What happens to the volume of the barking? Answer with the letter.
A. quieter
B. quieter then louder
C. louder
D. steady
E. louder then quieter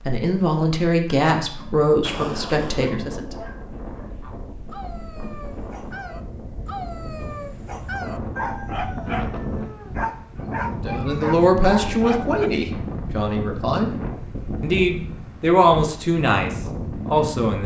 C.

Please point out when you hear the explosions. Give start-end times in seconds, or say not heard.
2.0-3.0.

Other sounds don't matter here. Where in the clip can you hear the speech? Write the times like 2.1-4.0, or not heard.
0.1-3.4, 10.8-13.9, 14.6-17.6.